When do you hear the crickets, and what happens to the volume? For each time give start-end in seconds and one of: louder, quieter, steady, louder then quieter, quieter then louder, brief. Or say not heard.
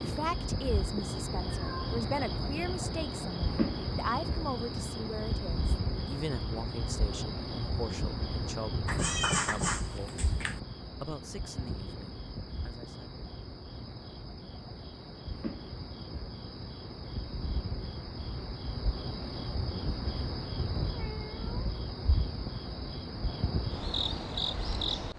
0.0-25.1 quieter then louder.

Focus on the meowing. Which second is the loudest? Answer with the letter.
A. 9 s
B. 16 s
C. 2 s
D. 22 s
A.